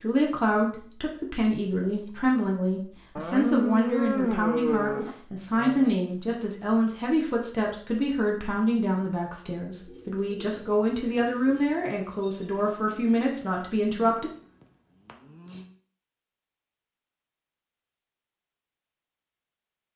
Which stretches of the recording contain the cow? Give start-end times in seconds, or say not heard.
3.1-5.9, 13.9-15.7.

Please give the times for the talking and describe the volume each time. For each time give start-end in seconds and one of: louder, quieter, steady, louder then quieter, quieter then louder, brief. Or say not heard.
0.0-14.3 steady.